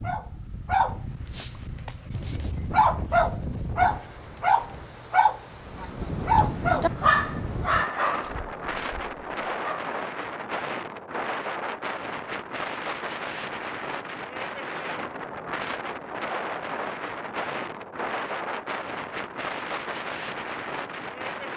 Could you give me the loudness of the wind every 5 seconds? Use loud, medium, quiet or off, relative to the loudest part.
medium, loud, loud, loud, loud.